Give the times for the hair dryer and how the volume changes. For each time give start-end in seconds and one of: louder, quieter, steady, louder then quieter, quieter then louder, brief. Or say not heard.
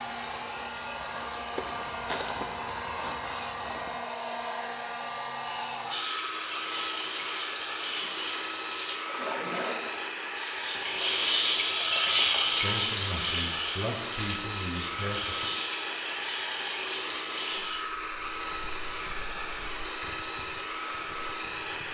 0.0-21.8 steady.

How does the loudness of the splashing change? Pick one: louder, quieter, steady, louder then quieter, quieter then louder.
louder then quieter.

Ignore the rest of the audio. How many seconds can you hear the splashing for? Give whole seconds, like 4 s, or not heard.
12 s.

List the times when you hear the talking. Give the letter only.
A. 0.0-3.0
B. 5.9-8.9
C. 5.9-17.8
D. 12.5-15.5
D.